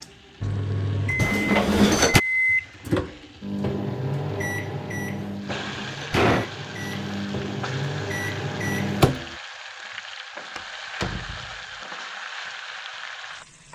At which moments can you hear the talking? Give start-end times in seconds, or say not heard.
not heard.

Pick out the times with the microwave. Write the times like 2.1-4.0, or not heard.
0.0-9.3.